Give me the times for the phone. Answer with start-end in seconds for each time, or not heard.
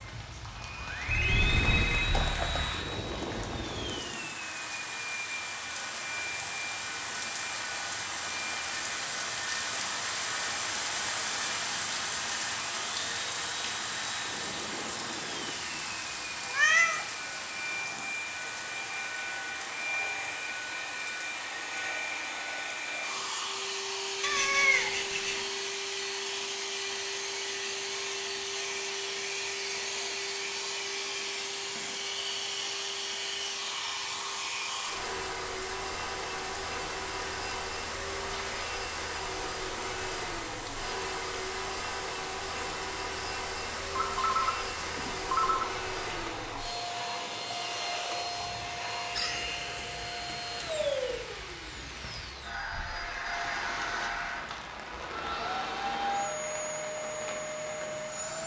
1.1-2.8, 44.0-45.7.